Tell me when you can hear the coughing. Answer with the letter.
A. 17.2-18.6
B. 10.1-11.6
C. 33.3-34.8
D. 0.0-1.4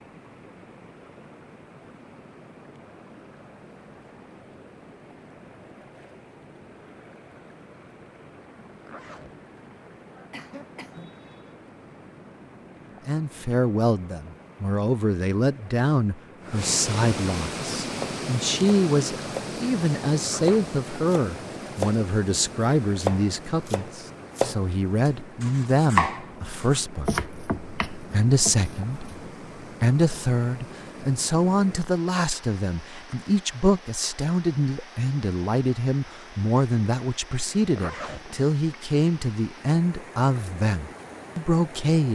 B.